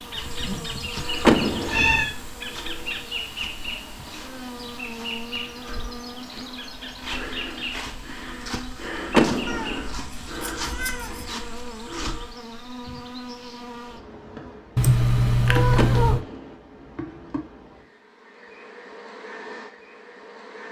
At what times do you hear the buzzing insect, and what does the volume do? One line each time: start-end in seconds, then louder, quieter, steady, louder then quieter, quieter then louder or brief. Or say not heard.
0.0-20.6 quieter.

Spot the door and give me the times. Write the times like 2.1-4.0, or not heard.
1.2-2.0, 9.1-9.9, 15.8-16.6.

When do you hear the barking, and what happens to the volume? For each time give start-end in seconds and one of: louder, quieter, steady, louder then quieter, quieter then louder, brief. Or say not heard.
not heard.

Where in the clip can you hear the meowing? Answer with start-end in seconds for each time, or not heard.
1.4-2.1, 9.4-11.3, 14.8-16.2.